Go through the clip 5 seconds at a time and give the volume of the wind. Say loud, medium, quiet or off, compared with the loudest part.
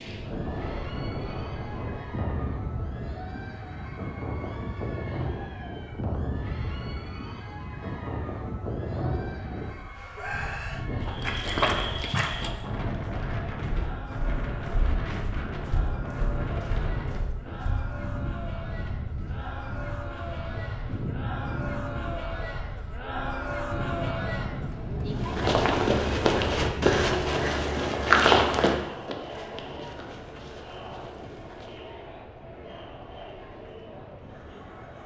loud, loud, loud, loud, loud, loud, quiet.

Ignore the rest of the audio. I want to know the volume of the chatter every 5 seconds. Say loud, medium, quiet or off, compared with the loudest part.
medium, medium, medium, medium, loud, loud, medium.